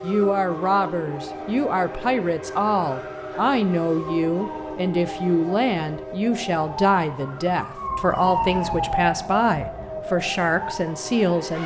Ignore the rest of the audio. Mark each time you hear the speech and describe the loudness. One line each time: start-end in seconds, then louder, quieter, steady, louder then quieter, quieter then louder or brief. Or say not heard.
0.0-11.6 steady.